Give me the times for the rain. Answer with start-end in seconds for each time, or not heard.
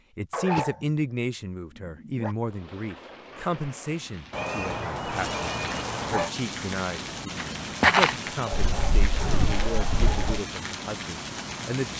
2.5-11.9.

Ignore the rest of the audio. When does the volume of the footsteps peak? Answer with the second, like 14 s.
8 s.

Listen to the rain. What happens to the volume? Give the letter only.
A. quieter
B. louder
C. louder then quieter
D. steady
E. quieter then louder
B.